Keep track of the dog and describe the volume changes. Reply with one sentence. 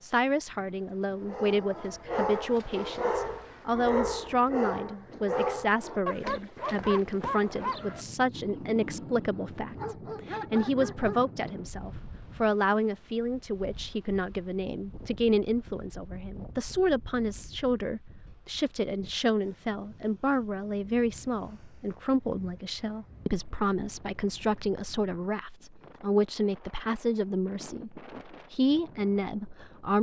The loudness of the dog goes down.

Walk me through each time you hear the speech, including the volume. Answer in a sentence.
The speech can be heard from 0.0 to 29.9 s, at a steady volume.